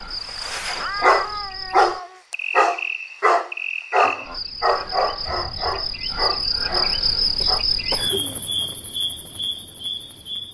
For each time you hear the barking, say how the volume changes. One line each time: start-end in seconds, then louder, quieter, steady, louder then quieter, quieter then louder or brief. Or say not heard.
0.2-7.7 quieter.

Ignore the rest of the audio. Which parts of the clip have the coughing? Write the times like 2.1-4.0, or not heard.
7.4-8.4.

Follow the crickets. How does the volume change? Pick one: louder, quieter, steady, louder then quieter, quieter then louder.
louder then quieter.